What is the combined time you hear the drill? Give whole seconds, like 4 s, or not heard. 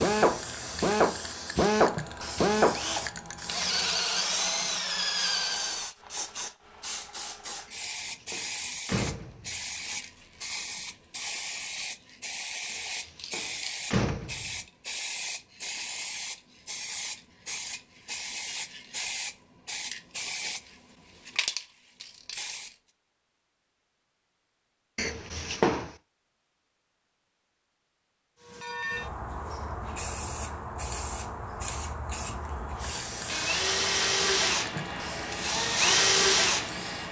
10 s.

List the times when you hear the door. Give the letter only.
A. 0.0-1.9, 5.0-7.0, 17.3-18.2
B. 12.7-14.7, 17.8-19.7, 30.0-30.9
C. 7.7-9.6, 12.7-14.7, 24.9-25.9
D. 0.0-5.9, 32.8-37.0
C.